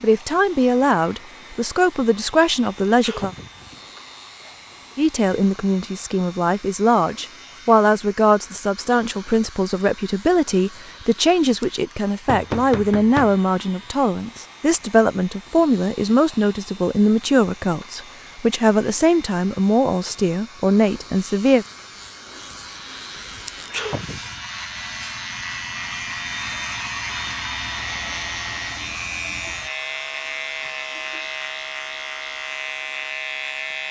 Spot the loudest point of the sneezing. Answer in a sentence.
The volume of the sneezing peaks at 24 seconds.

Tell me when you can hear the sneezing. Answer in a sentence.
The sneezing can be heard from 3.0 to 3.7 s and from 23.7 to 24.4 s.